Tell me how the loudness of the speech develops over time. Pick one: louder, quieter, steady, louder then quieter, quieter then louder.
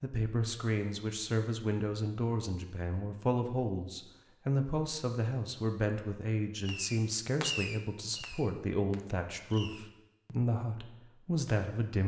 steady.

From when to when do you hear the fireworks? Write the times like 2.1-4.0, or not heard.
6.7-9.9.